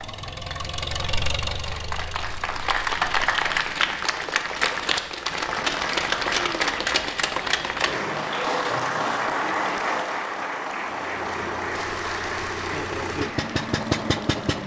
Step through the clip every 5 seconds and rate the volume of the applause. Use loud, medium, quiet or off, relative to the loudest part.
loud, loud, medium.